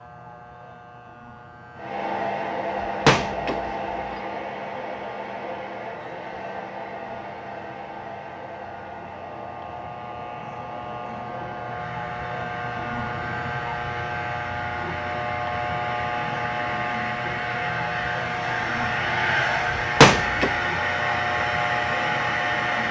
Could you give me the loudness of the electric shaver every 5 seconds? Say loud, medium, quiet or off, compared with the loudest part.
quiet, quiet, loud, loud, loud.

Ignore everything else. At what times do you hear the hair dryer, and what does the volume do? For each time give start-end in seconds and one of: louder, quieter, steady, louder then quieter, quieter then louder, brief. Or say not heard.
1.8-22.8 quieter then louder.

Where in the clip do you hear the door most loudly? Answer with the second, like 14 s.
20 s.